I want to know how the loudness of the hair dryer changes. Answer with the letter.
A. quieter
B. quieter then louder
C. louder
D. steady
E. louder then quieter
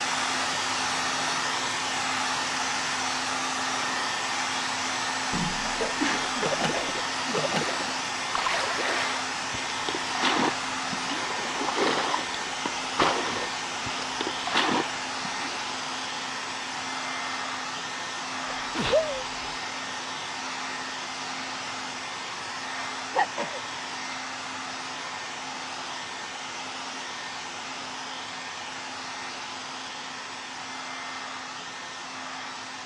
A.